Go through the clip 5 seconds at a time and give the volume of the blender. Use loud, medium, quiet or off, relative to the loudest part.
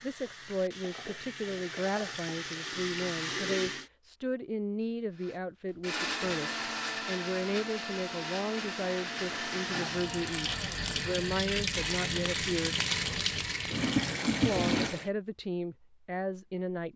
off, loud, loud, off.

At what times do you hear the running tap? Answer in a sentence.
The running tap can be heard from 0.0 to 3.9 s and from 6.0 to 15.1 s.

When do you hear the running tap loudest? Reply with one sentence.
The volume of the running tap peaks at 14 seconds.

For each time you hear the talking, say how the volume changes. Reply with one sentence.
You can hear the talking from 0.0 to 12.8 s, at a steady volume; and briefly from 14.4 to 16.9 s.